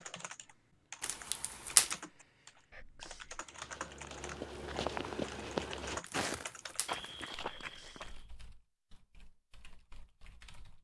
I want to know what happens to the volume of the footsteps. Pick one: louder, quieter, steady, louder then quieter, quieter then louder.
louder then quieter.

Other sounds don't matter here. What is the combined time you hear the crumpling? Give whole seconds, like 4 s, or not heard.
2 s.